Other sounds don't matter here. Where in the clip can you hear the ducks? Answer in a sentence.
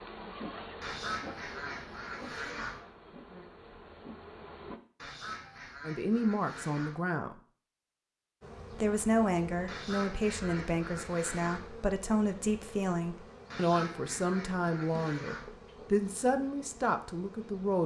The ducks can be heard from 0.8 to 2.8 s, from 5.0 to 7.0 s, from 9.7 to 11.7 s and from 13.5 to 15.5 s.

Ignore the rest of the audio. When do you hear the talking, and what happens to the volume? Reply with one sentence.
The talking can be heard briefly from 5.8 to 7.3 s; and from 8.7 to 17.8 s, at a steady volume.